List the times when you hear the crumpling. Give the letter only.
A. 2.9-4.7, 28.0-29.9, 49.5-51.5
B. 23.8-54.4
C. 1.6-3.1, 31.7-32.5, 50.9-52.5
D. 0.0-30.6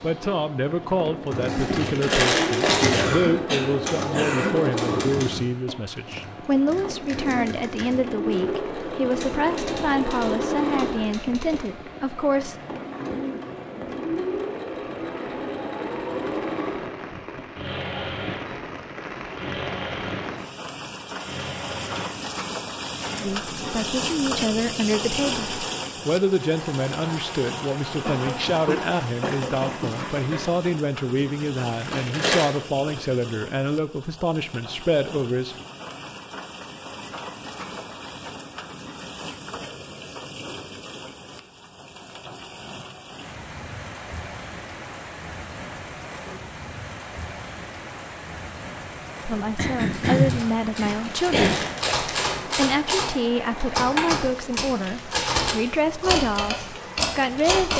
C.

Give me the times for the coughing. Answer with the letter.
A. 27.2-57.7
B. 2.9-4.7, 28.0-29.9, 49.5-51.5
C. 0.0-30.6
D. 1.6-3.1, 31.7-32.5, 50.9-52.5
B.